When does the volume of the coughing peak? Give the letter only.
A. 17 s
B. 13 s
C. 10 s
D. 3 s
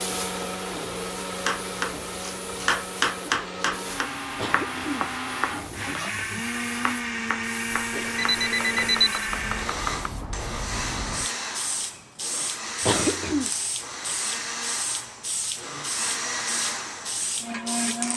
B.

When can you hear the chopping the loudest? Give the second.
3 s.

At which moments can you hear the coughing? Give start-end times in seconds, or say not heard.
4.3-6.0, 12.8-13.5.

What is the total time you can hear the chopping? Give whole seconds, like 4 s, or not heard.
9 s.